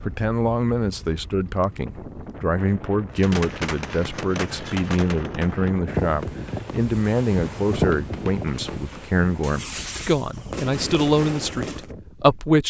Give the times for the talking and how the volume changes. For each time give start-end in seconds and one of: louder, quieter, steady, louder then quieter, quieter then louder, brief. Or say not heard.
0.1-12.6 steady.